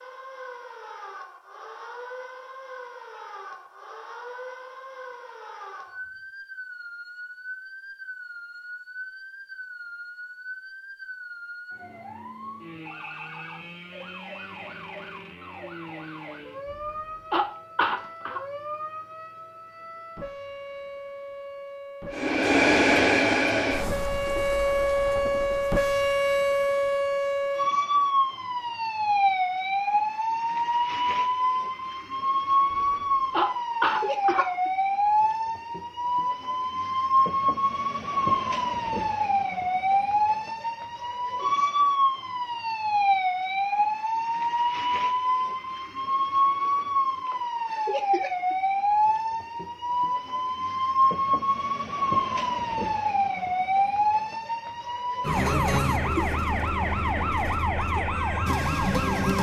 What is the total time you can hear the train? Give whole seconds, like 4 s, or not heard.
4 s.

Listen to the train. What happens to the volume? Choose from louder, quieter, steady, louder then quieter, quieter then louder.
quieter.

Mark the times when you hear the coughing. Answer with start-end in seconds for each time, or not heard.
16.6-18.4, 32.7-34.5.